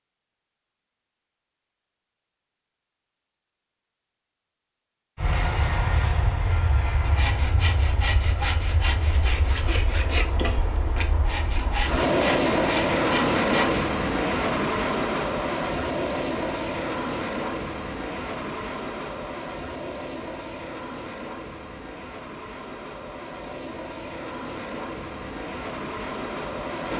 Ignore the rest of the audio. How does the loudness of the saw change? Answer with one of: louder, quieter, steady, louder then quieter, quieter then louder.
steady.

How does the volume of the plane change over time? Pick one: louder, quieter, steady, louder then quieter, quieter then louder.
louder then quieter.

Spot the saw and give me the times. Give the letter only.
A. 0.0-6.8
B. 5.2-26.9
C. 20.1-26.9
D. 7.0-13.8
D.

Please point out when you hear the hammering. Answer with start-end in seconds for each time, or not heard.
not heard.